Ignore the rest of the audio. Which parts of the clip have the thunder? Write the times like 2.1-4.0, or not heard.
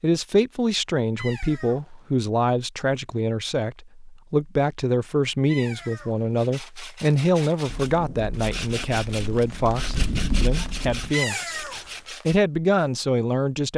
7.7-11.2.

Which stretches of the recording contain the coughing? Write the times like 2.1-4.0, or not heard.
not heard.